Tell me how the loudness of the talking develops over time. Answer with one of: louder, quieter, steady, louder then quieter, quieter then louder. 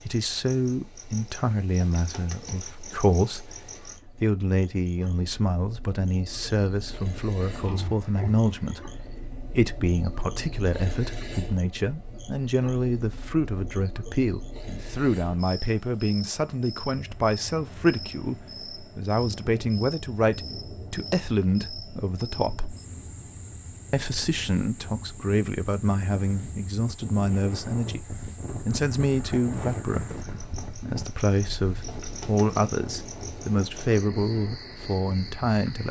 steady.